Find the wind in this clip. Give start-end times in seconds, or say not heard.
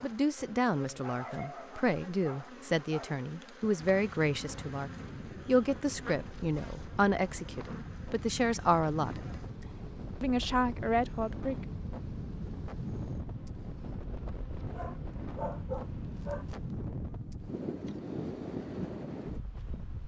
3.8-20.0.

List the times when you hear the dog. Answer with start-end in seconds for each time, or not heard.
0.8-3.1, 14.7-16.4.